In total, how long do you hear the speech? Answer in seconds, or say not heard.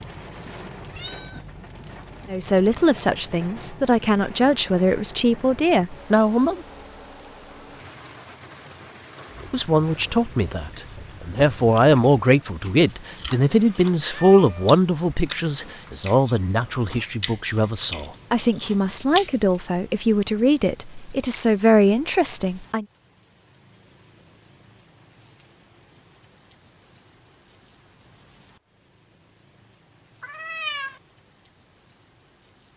18 s.